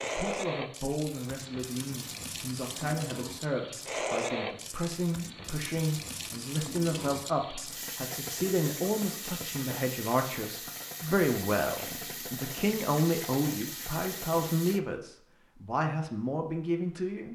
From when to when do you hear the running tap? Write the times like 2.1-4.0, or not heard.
0.0-14.8.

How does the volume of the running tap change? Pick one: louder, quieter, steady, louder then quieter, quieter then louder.
steady.